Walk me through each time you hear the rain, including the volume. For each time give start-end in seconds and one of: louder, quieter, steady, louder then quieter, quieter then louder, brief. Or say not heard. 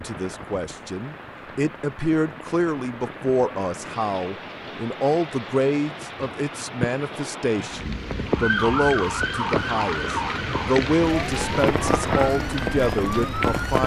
0.0-13.8 louder.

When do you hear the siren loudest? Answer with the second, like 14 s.
9 s.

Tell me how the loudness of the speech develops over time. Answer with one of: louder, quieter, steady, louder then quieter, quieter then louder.
steady.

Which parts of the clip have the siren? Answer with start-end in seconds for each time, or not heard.
8.2-13.8.